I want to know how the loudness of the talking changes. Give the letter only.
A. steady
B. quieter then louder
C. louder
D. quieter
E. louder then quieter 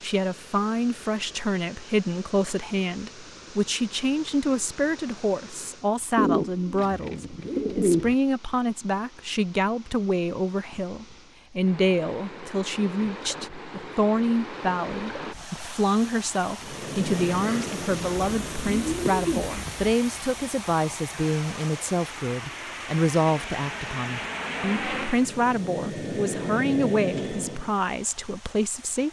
A.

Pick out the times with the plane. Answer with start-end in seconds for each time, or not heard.
16.6-27.8.